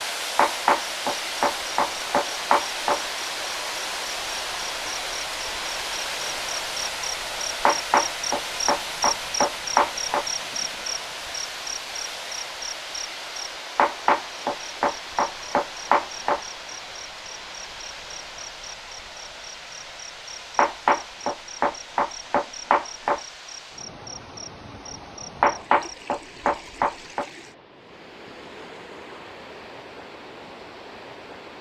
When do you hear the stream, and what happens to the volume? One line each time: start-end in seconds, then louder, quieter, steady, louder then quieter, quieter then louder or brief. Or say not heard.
0.0-31.5 quieter.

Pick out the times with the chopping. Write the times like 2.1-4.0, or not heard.
0.3-3.0, 7.7-10.2, 13.8-16.4, 20.6-23.2, 25.4-27.2.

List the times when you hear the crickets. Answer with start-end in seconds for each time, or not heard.
0.0-25.9.